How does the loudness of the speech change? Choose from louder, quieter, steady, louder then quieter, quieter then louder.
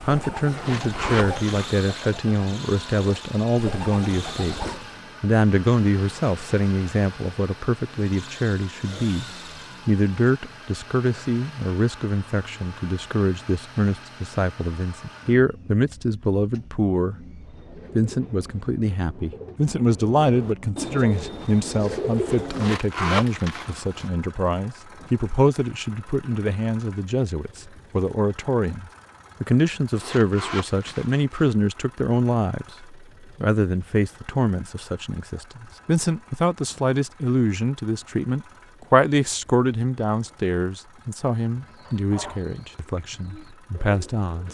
steady.